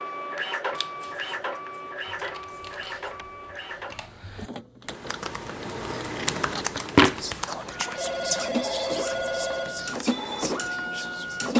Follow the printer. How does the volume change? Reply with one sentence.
The loudness of the printer goes down, then up.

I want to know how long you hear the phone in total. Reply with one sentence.
You can hear the phone for 2 seconds altogether.